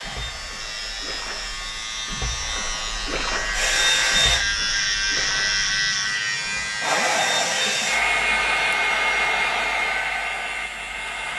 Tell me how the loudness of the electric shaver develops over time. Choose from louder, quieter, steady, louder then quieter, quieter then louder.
louder then quieter.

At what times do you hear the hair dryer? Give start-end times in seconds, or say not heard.
0.0-4.5, 6.8-11.3.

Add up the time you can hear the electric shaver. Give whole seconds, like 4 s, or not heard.
11 s.